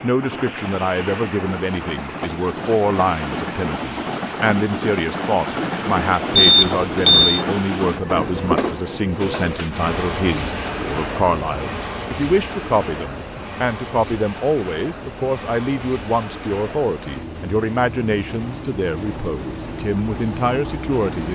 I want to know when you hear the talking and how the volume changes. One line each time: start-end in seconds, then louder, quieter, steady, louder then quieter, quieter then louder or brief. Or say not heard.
0.0-21.2 steady.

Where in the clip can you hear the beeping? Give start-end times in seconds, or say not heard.
6.4-7.4.